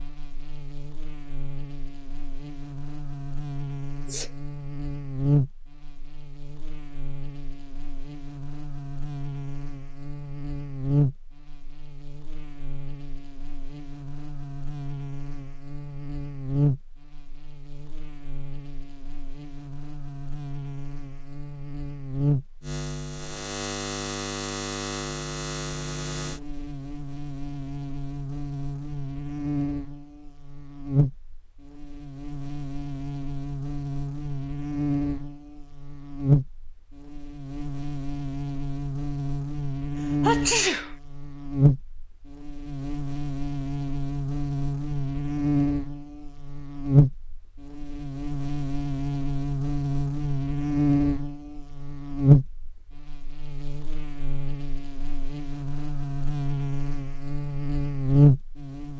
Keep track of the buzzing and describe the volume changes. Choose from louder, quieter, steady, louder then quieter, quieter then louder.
louder.